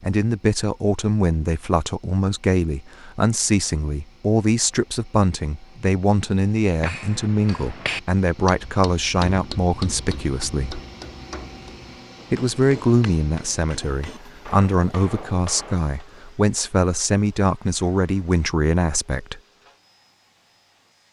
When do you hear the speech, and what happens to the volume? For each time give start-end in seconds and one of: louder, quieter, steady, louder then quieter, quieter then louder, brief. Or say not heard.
0.0-10.8 steady
12.3-19.4 steady.